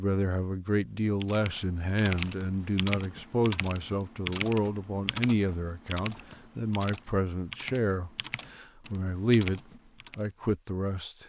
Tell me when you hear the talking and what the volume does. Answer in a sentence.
The talking can be heard from 0.0 to 11.2 s, at a steady volume.